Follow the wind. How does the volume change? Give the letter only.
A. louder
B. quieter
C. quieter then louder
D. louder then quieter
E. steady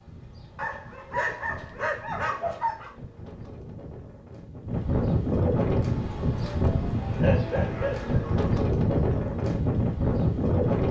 A.